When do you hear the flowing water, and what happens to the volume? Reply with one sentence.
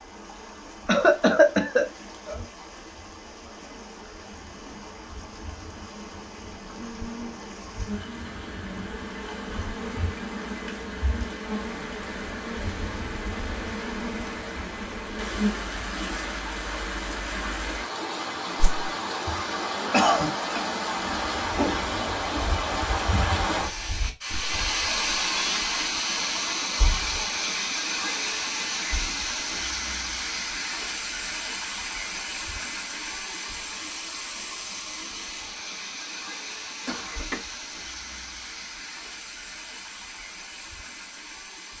You can hear the flowing water from 0.0 to 41.7 s, getting louder then quieter.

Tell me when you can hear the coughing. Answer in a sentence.
You can hear the coughing from 0.8 to 2.4 s, from 19.2 to 20.6 s and from 36.9 to 37.5 s.